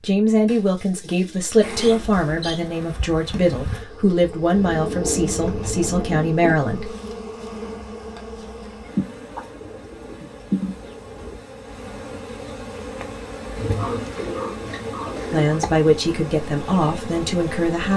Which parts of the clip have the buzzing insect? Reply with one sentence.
You can hear the buzzing insect from 1.6 to 17.9 s.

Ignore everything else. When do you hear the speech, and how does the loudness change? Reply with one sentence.
The speech can be heard from 0.0 to 7.0 s, at a steady volume; and briefly from 15.3 to 17.9 s.